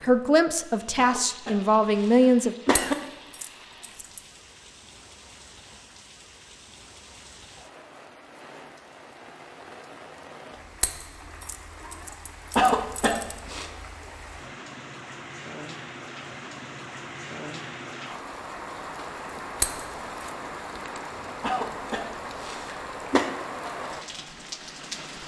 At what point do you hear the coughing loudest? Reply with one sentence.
The loudest moment of the coughing is at 13 seconds.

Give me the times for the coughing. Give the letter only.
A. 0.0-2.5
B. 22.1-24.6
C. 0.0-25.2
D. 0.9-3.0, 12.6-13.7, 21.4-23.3
D.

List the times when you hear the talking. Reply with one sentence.
You can hear the talking from 0.0 to 2.5 s.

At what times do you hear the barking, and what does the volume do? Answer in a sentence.
The barking can't be heard in this clip.